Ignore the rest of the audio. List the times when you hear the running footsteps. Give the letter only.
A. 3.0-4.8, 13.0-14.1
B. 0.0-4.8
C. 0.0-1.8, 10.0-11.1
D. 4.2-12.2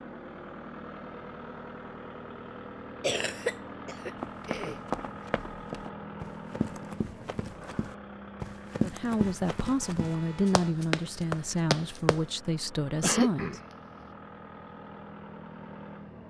D.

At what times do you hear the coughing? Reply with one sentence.
The coughing can be heard from 3.0 to 4.8 s and from 13.0 to 14.1 s.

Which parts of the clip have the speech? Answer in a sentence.
The speech can be heard from 8.8 to 13.6 s.